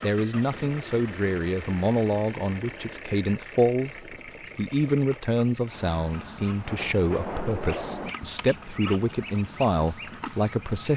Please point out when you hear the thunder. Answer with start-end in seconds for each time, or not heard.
6.6-8.2.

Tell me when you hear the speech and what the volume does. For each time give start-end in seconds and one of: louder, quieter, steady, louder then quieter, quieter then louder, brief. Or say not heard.
0.0-10.9 steady.